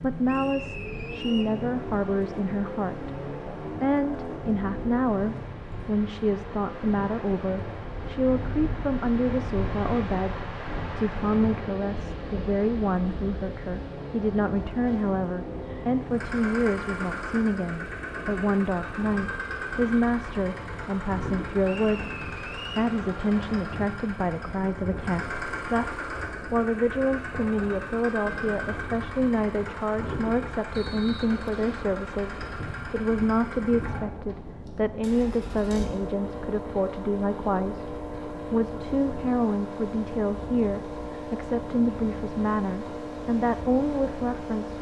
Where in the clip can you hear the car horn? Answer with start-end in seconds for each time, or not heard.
not heard.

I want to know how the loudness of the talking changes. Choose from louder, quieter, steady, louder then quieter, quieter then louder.
steady.